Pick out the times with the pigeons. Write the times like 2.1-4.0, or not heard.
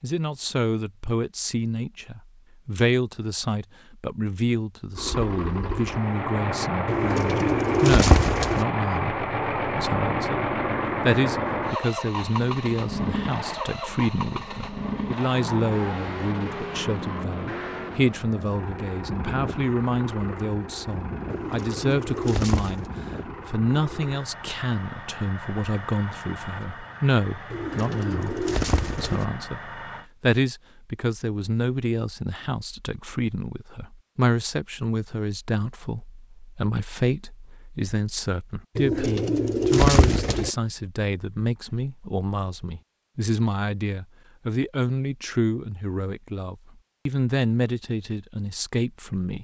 6.8-8.7, 21.3-22.9, 27.5-29.2, 38.8-40.5.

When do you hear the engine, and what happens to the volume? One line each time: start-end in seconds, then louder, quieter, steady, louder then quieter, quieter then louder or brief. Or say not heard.
5.0-30.1 quieter.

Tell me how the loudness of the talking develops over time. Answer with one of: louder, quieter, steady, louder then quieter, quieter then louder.
steady.